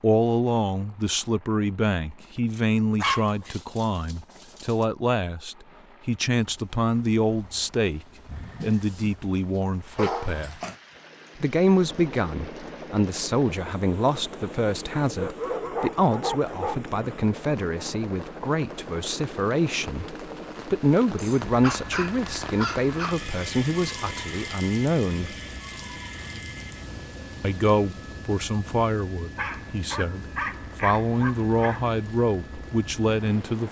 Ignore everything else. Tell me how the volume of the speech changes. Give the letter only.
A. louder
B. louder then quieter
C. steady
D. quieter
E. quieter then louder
C.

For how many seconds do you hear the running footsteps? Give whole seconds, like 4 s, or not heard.
not heard.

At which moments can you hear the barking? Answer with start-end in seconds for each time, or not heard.
3.0-4.8, 8.2-9.2, 9.9-10.8, 14.9-16.8, 21.1-23.2, 29.4-31.9.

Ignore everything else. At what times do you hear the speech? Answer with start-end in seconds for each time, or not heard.
0.0-10.6, 11.3-25.4, 27.4-33.6.